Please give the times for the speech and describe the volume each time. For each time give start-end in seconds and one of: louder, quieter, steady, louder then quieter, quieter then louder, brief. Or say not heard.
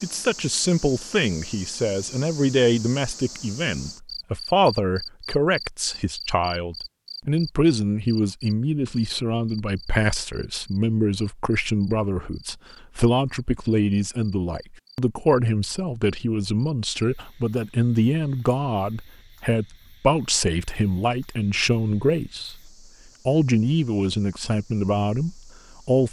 0.0-26.0 steady.